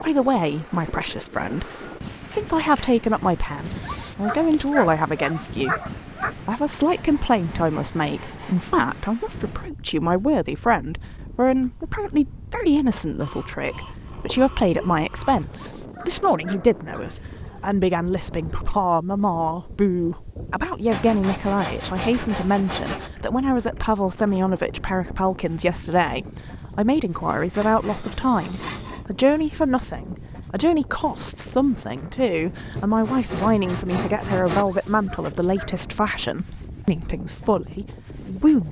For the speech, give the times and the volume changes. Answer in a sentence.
You can hear the speech from 0.0 to 38.6 s, at a steady volume.